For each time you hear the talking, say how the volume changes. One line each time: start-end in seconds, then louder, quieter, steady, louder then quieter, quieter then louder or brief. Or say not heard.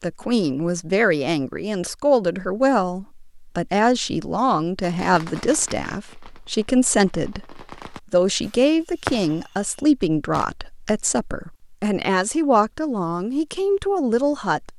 0.0-14.7 steady.